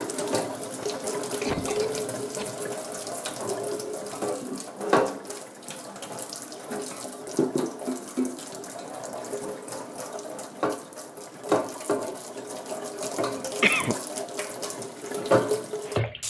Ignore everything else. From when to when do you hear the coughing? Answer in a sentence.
You can hear the coughing from 0.8 to 2.5 s and from 13.2 to 13.9 s.